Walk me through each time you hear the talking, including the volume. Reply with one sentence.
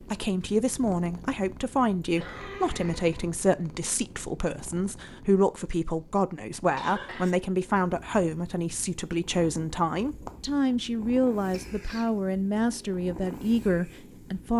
You can hear the talking from 0.1 to 14.5 s, at a steady volume.